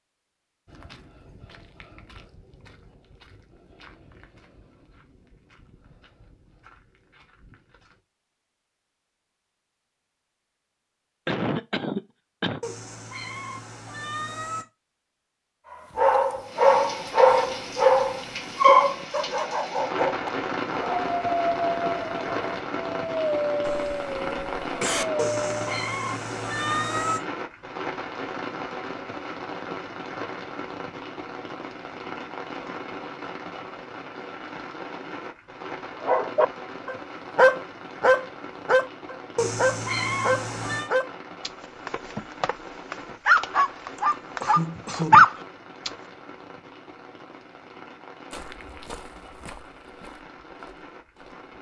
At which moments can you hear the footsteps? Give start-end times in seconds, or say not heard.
0.7-8.0, 48.3-51.5.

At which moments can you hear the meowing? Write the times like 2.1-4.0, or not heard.
12.6-14.7, 25.1-27.2, 39.4-40.9.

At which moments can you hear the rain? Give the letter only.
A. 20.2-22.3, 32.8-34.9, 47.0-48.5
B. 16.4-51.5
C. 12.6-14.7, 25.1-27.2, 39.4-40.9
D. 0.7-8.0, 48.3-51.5
B.